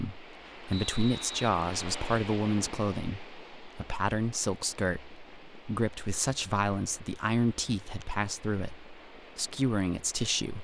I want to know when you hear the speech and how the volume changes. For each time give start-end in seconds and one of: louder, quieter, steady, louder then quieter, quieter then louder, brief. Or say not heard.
0.0-10.5 steady.